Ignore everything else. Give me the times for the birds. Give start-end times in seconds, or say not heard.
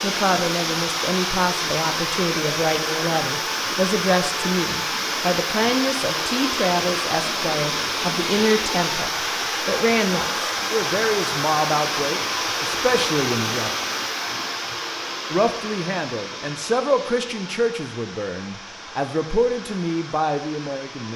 not heard.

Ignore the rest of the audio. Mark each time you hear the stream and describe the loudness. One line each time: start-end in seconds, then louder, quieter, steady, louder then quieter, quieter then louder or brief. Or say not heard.
0.0-21.1 quieter.